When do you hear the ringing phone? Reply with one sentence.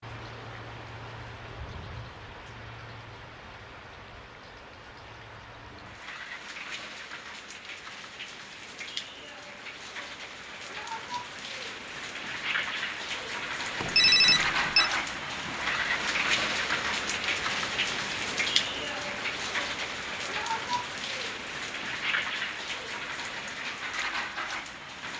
The ringing phone can be heard from 13.8 to 14.9 s.